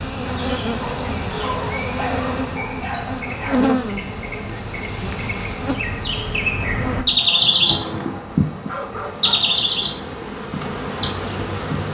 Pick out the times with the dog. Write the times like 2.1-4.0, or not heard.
0.8-3.8, 7.7-9.3.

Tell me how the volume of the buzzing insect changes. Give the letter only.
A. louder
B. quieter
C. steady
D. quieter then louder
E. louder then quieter
D.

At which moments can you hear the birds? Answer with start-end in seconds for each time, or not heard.
0.1-11.8.